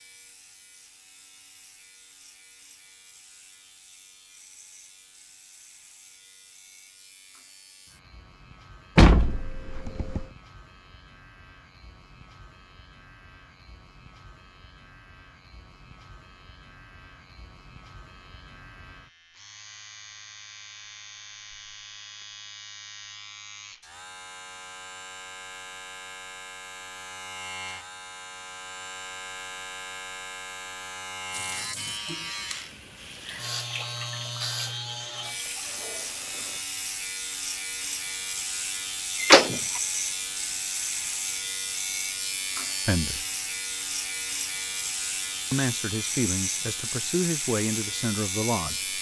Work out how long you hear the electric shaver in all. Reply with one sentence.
You can hear the electric shaver for 49 seconds altogether.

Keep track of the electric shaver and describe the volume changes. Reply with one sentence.
The volume of the electric shaver goes up.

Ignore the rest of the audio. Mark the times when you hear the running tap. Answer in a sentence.
You can hear the running tap from 31.3 to 36.6 s.